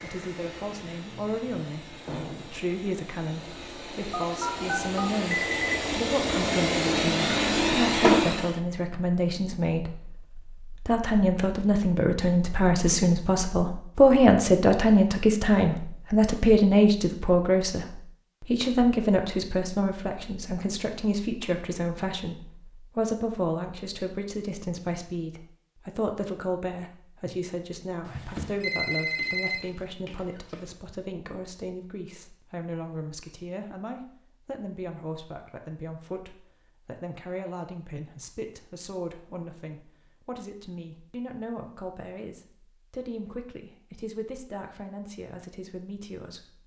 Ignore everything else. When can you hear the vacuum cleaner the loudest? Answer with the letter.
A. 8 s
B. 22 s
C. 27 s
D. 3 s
A.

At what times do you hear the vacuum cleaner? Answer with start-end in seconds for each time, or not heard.
0.0-8.6.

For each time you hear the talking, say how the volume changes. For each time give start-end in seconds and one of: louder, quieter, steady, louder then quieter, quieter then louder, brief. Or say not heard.
0.0-46.6 louder then quieter.